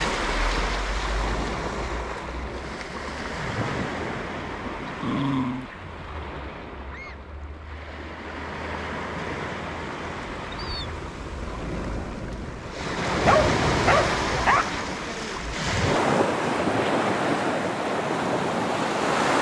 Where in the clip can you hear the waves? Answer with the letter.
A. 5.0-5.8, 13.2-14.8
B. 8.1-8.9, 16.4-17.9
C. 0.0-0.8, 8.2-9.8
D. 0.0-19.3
D.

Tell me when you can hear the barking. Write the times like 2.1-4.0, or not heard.
5.0-5.8, 13.2-14.8.